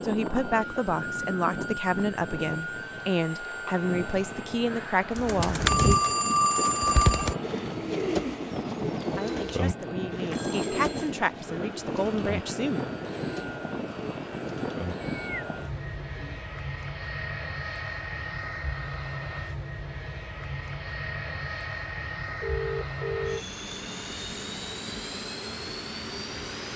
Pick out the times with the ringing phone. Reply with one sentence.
The ringing phone can be heard from 5.7 to 7.3 s, from 10.3 to 11.1 s and from 22.4 to 23.4 s.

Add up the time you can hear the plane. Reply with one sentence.
The plane can be heard for 27 seconds in total.